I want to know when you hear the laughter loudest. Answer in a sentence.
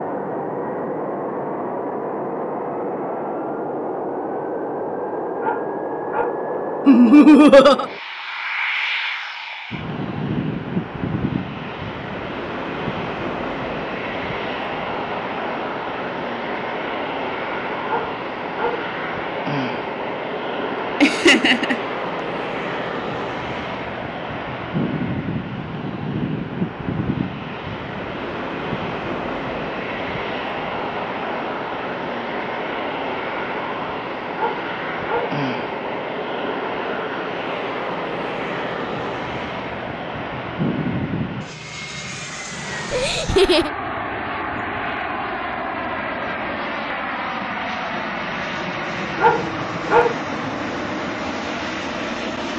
The loudest moment of the laughter is at 7 seconds.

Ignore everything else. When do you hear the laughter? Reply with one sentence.
The laughter can be heard from 6.8 to 7.8 s, from 21.0 to 21.8 s and from 42.9 to 43.7 s.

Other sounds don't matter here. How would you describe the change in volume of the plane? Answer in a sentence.
The volume of the plane stays about the same.